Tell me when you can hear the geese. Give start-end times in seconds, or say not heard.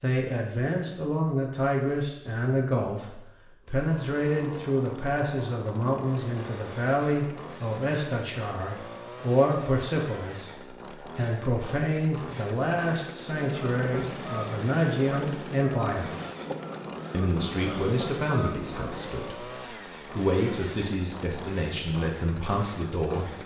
13.2-19.1.